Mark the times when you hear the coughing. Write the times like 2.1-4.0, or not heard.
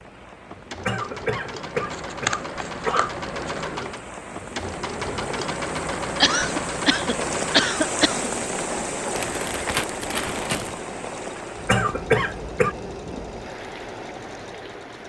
0.8-3.1, 6.2-8.3, 11.7-12.8.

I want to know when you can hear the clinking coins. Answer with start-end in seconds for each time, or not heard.
not heard.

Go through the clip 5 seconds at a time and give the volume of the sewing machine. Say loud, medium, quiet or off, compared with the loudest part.
loud, loud, medium.